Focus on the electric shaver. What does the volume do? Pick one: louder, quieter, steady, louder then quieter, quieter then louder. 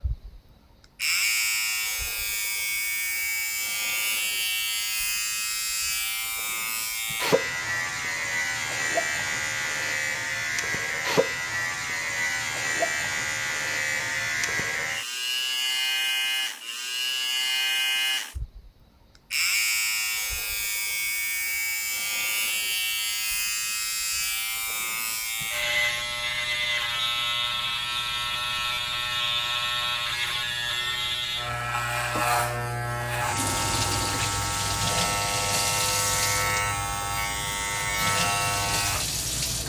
steady.